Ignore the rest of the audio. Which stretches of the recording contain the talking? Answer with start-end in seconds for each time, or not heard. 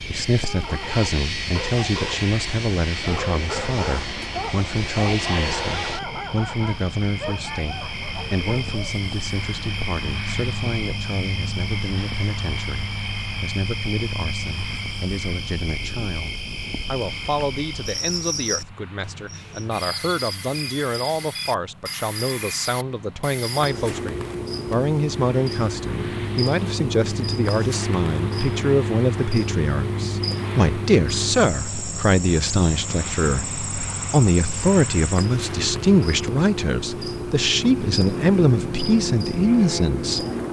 0.0-40.2.